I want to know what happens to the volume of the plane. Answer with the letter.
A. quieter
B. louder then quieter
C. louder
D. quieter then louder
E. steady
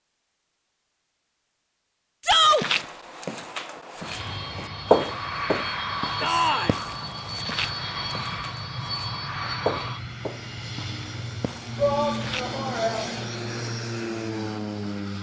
E.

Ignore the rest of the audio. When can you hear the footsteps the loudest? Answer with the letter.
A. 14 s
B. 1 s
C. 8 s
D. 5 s
D.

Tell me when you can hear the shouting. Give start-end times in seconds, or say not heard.
2.2-2.6, 6.2-6.8, 11.8-13.1.